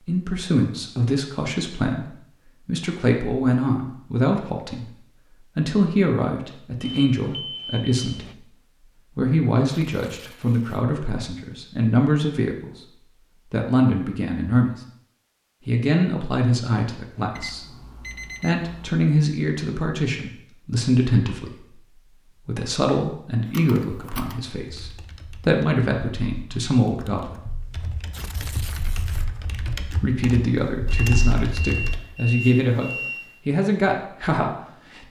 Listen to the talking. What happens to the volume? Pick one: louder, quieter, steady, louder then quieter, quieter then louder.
steady.